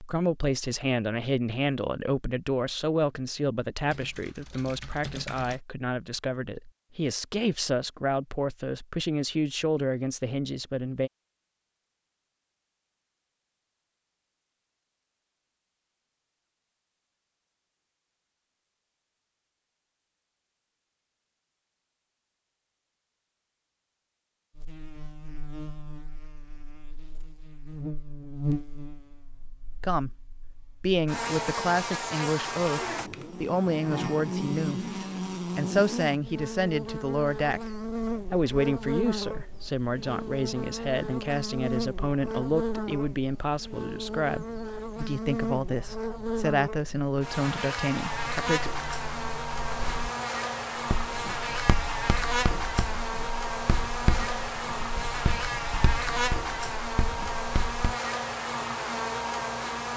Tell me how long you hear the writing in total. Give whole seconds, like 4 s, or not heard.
7 s.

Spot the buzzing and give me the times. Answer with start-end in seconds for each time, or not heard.
24.6-59.9.